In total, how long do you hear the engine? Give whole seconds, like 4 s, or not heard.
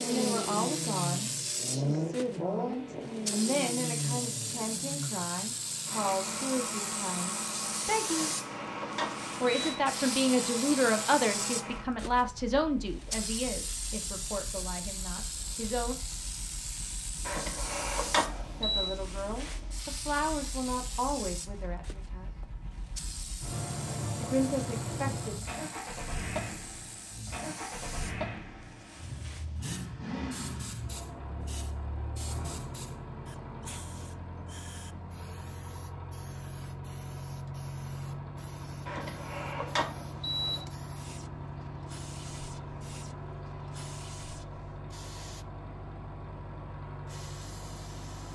48 s.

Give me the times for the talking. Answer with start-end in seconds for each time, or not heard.
0.0-8.3, 9.4-15.9, 18.5-22.3, 24.2-25.4.